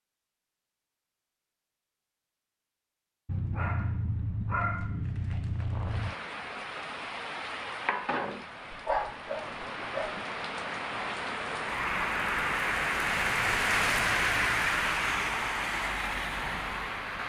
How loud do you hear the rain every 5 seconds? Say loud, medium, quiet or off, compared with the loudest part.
off, medium, loud, loud.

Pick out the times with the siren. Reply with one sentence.
The siren can't be heard in this clip.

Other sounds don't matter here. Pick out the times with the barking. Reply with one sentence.
The barking can be heard from 3.2 to 6.2 s and from 8.7 to 10.2 s.